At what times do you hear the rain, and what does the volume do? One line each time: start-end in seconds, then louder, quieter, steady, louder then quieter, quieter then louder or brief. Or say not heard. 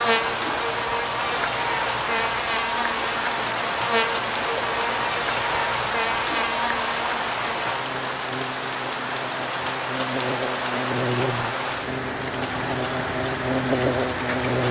0.0-14.6 steady.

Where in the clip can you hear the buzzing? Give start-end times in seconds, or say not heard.
0.0-14.6.